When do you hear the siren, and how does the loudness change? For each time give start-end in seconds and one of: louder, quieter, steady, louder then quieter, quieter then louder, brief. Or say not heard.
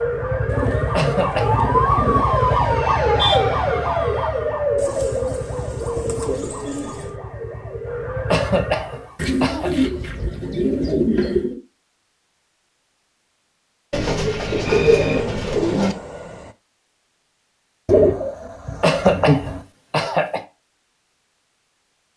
0.0-9.2 quieter.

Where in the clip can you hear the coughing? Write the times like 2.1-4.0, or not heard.
0.9-1.6, 8.3-9.7, 18.8-20.4.